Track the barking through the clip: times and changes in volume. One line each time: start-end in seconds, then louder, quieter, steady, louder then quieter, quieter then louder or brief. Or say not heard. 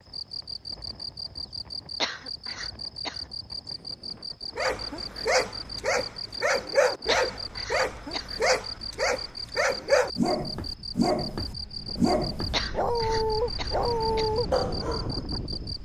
4.5-15.2 steady.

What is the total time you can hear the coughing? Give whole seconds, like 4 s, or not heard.
4 s.